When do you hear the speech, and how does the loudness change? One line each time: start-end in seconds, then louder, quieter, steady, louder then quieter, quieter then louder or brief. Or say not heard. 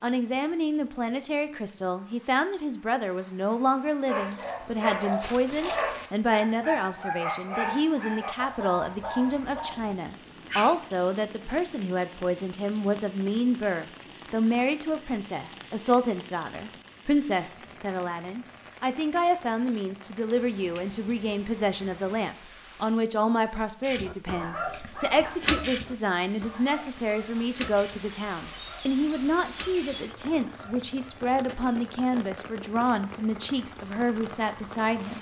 0.0-35.1 steady.